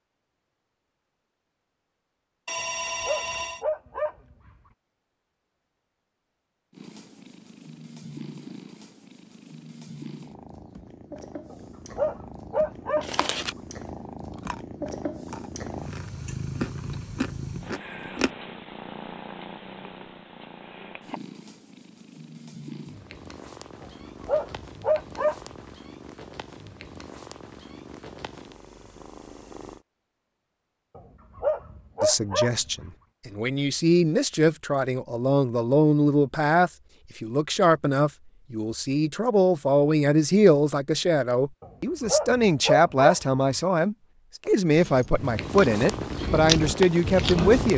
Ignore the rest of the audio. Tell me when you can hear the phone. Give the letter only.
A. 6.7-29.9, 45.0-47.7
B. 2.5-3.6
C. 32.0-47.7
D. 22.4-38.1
B.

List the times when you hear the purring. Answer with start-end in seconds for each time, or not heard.
6.7-29.9, 45.0-47.7.